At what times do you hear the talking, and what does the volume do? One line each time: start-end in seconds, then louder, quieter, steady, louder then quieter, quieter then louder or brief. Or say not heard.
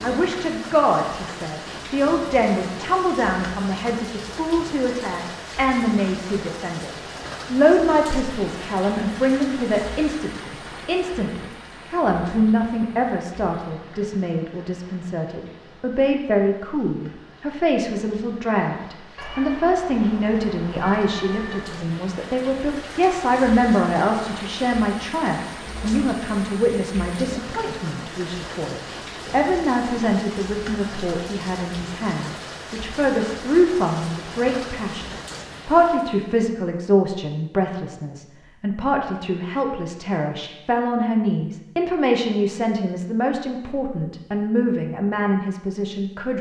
0.0-46.3 steady.